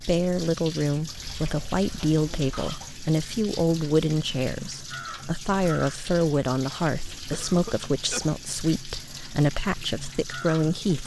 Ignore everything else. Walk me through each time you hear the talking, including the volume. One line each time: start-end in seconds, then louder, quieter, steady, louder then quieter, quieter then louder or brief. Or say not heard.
0.0-11.0 steady.